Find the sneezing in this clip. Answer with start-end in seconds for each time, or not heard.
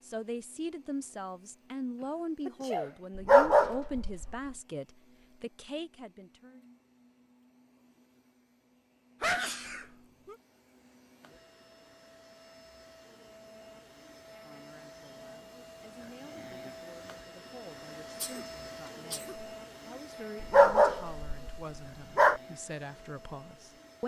2.0-3.0, 9.2-10.3, 18.1-19.5.